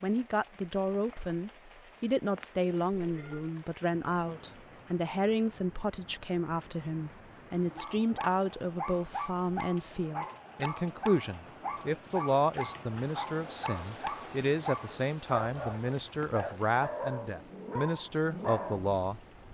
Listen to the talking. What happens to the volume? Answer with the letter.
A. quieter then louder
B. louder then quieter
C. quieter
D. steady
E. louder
D.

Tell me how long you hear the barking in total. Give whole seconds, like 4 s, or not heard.
11 s.